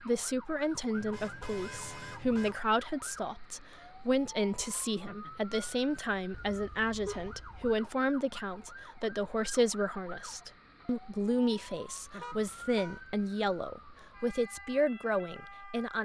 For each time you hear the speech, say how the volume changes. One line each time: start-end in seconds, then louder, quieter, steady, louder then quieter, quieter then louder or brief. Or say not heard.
0.0-15.9 steady.